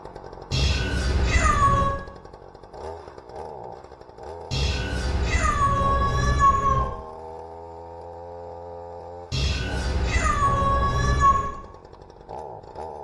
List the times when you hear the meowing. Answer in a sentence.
The meowing can be heard from 0.5 to 2.0 s, from 4.5 to 6.8 s and from 9.3 to 11.5 s.